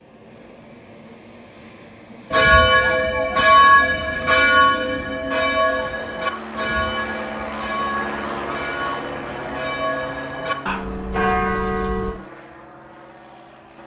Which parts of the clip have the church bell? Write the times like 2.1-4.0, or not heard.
2.3-12.2.